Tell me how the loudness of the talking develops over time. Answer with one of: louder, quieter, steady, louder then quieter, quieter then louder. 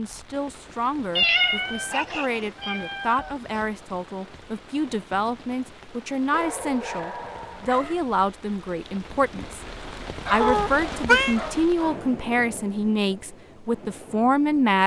louder.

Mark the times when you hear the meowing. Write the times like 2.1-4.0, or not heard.
1.1-3.6, 10.4-11.3.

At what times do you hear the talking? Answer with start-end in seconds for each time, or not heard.
0.0-9.6, 10.3-14.8.